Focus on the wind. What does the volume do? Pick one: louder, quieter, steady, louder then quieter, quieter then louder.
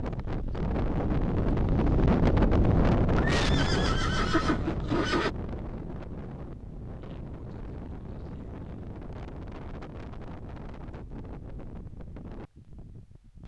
quieter.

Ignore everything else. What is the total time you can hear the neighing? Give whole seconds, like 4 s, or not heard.
2 s.